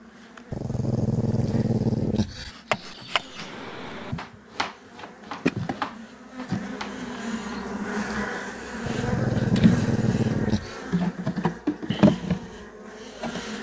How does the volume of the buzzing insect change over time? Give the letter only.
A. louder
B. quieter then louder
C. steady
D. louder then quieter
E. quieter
A.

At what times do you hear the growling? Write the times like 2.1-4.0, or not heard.
0.5-2.5, 8.8-10.8.